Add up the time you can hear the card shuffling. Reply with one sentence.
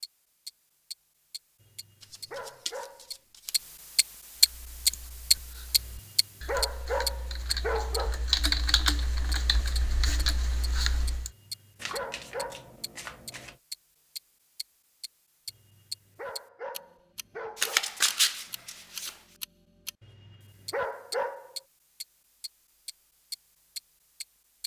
The card shuffling can be heard for 5 seconds in total.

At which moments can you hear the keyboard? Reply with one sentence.
The keyboard can be heard from 4.3 to 11.3 s.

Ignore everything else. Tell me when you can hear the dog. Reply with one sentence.
The dog can be heard from 1.6 to 3.1 s, from 5.8 to 8.2 s, from 11.2 to 12.8 s, from 15.4 to 17.8 s and from 20.0 to 21.6 s.